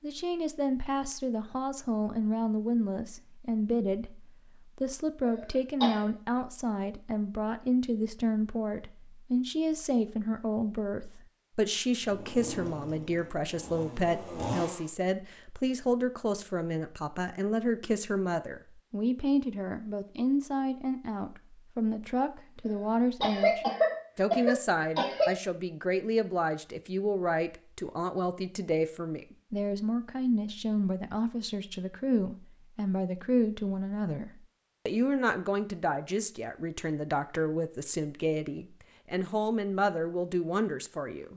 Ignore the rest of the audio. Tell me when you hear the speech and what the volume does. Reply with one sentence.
The speech can be heard from 0.0 to 41.3 s, at a steady volume.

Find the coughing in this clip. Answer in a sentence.
The coughing can be heard from 5.2 to 6.0 s and from 22.6 to 25.3 s.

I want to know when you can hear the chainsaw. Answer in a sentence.
You can hear the chainsaw from 12.1 to 14.9 s.